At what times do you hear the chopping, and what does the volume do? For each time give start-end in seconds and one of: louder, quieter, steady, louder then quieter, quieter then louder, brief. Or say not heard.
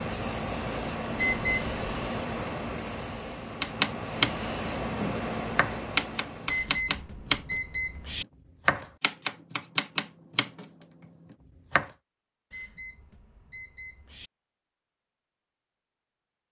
3.6-4.5 brief
5.5-11.9 quieter.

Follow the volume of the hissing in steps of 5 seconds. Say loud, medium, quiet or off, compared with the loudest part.
loud, loud, off, off.